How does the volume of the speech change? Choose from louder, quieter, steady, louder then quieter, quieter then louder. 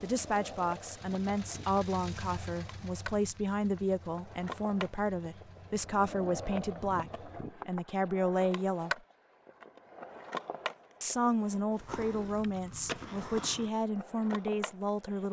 steady.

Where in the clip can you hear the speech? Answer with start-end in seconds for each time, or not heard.
0.0-9.0, 11.0-15.2.